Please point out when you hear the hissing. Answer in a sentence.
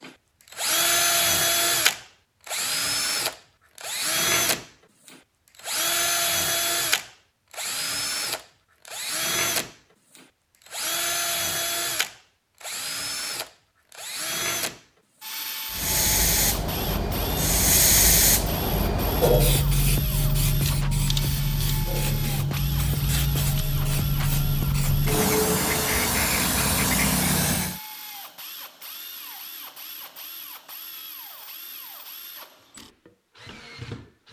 The hissing can be heard from 15.7 to 27.8 s.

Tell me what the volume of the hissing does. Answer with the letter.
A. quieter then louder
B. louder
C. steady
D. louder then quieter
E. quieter
C.